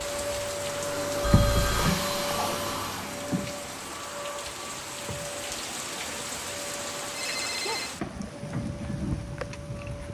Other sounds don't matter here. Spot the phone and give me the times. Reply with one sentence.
You can hear the phone from 1.2 to 1.9 s and from 7.1 to 8.0 s.